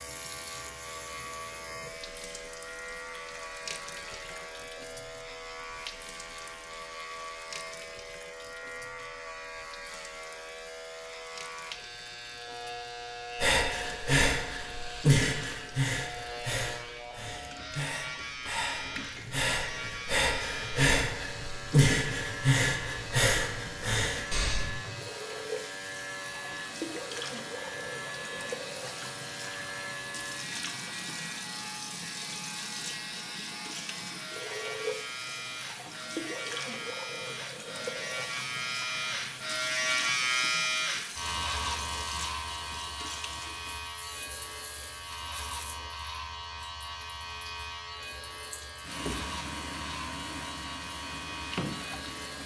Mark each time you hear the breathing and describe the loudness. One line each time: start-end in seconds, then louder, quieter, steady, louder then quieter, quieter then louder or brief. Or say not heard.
13.3-24.7 quieter then louder.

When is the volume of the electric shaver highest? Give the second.
40 s.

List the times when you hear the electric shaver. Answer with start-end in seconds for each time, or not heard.
0.0-52.4.